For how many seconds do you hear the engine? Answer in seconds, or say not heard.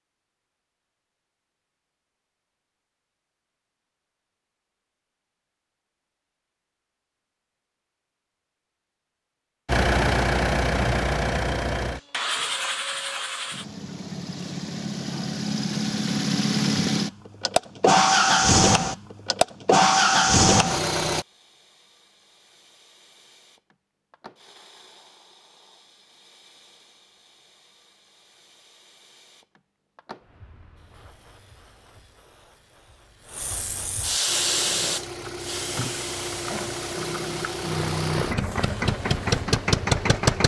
18 s.